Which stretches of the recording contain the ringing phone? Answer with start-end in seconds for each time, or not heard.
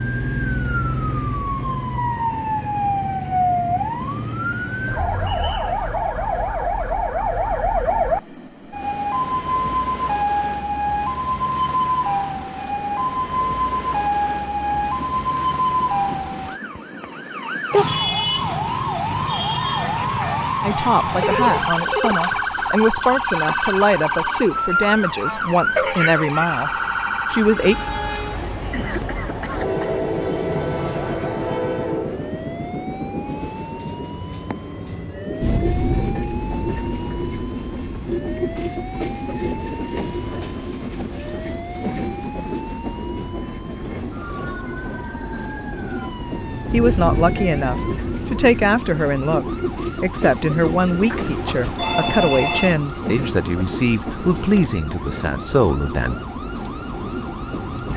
21.1-22.4, 51.1-52.8.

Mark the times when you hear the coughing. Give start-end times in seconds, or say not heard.
28.6-30.0.